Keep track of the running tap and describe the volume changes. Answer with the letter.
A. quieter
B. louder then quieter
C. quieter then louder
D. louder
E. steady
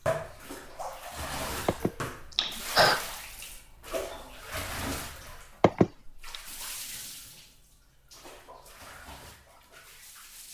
A.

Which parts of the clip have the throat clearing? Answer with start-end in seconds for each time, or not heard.
1.6-3.0, 5.6-6.3.